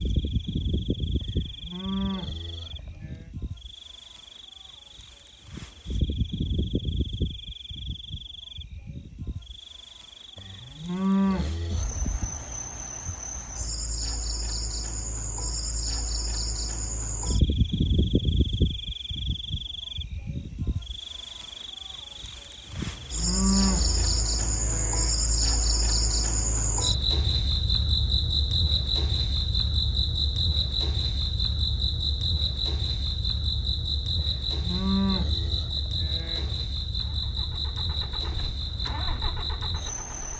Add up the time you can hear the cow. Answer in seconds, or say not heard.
8 s.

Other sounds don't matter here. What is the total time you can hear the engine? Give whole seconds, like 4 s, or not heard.
4 s.